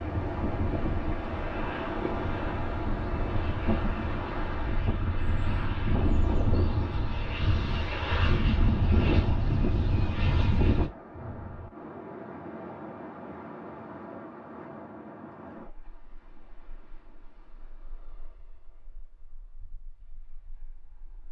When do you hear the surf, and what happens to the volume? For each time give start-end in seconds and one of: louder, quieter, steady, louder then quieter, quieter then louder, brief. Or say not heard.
0.0-21.2 quieter.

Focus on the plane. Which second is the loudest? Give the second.
9 s.